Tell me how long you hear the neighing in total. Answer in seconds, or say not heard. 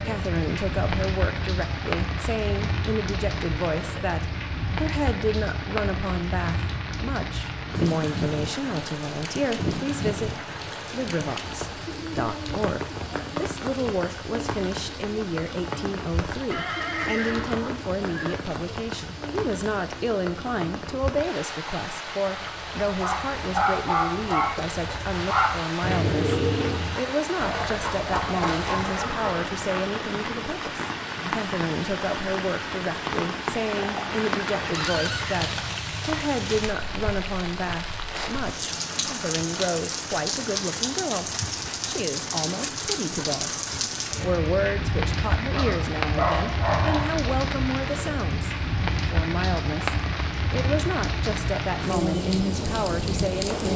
4 s.